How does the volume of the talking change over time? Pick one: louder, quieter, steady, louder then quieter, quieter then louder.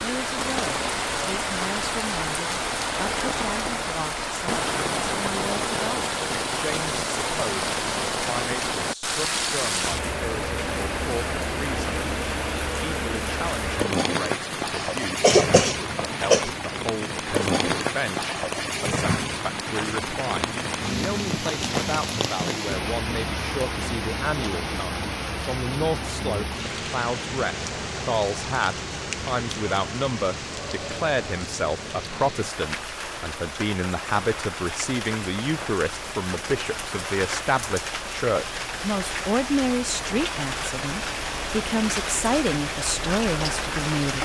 louder.